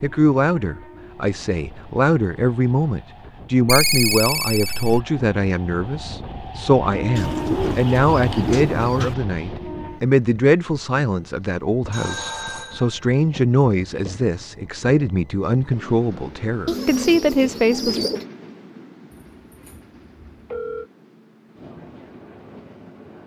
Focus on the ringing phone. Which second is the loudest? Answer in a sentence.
The loudest moment of the ringing phone is at 4 seconds.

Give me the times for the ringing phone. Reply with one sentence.
You can hear the ringing phone from 3.6 to 5.0 s, from 11.9 to 13.2 s and from 19.1 to 20.9 s.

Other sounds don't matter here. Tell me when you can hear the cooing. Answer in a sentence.
The cooing can be heard from 7.2 to 9.2 s and from 16.6 to 18.2 s.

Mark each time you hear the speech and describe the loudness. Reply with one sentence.
The speech can be heard from 0.0 to 18.1 s, at a steady volume.